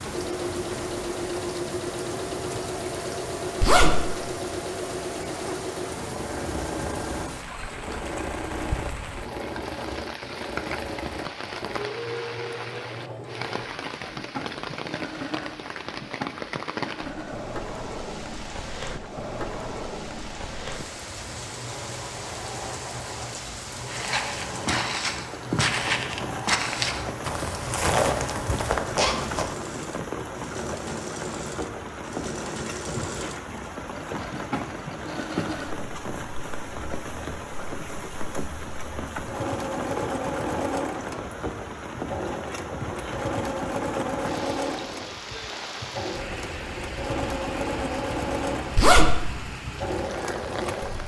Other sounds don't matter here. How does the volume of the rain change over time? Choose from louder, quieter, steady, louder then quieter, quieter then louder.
steady.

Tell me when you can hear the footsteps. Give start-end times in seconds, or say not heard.
23.9-30.1.